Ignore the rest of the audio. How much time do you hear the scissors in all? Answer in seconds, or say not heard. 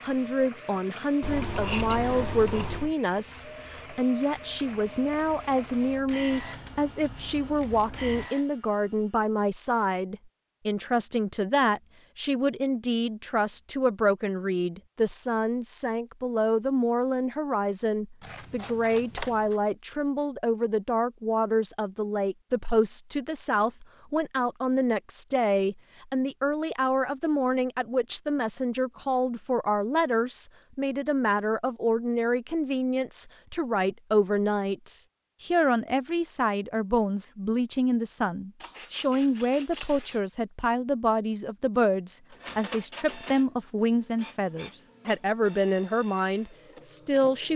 5 s.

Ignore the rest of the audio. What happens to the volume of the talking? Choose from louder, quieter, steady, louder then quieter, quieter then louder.
steady.